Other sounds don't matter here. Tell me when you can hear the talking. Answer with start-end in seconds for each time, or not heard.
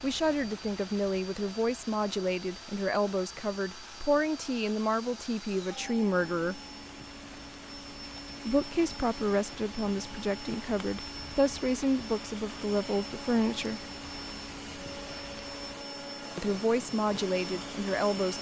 0.0-6.6, 8.4-13.8, 16.4-18.3.